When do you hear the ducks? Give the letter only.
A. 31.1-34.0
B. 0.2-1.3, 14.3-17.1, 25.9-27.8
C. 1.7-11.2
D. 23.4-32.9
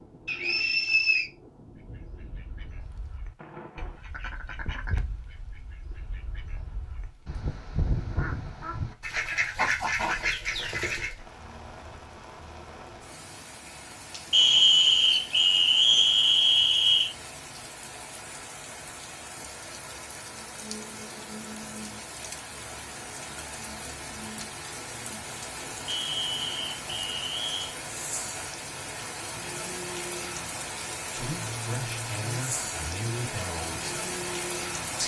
C.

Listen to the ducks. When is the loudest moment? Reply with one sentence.
The loudest moment of the ducks is at 10 seconds.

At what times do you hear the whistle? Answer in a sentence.
The whistle can be heard from 0.2 to 1.3 s, from 14.3 to 17.1 s and from 25.9 to 27.8 s.